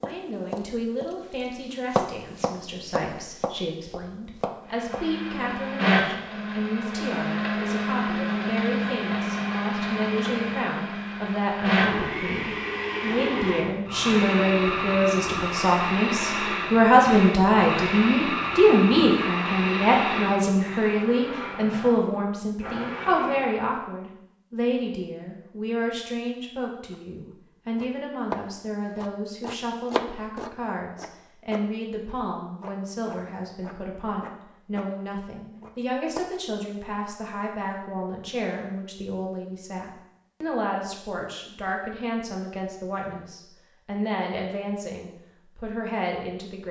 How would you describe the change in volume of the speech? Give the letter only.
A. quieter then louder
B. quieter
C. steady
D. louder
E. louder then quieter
E.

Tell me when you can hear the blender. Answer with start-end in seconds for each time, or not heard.
4.7-23.7.